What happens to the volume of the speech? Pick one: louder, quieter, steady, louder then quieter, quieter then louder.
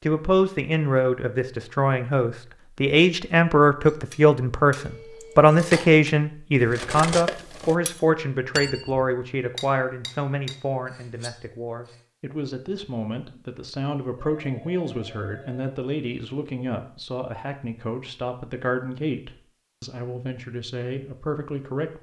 quieter.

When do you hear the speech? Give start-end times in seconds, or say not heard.
0.0-21.9.